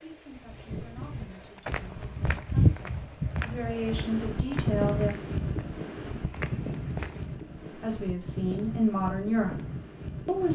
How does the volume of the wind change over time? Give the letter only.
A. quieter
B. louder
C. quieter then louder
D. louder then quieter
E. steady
D.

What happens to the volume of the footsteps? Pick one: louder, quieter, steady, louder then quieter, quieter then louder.
quieter.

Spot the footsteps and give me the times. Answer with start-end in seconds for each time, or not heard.
1.6-7.2.